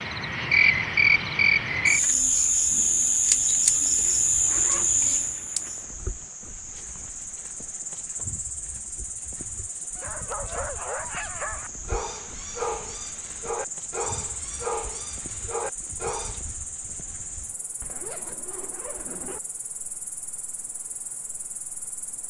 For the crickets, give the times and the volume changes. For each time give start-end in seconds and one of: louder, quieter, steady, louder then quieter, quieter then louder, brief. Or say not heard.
0.0-22.2 quieter.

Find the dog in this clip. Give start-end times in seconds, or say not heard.
9.9-16.4.